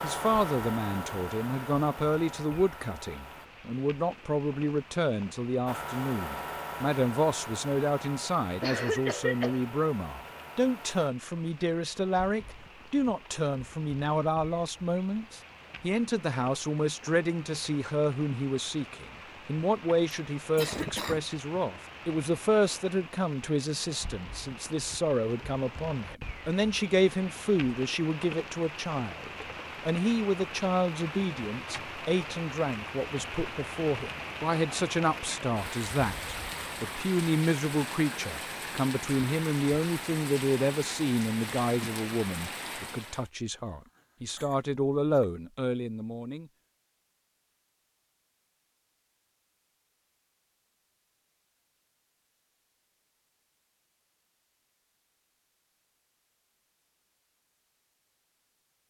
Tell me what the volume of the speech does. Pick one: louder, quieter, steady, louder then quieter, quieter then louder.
steady.